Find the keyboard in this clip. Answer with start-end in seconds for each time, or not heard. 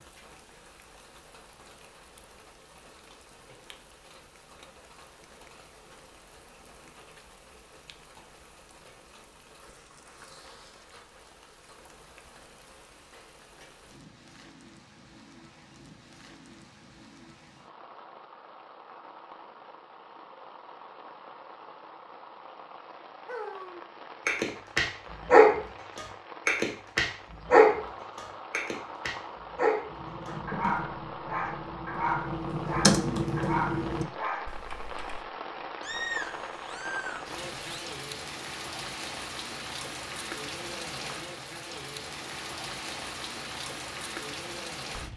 29.9-35.2.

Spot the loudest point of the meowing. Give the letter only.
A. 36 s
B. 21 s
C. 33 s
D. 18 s
A.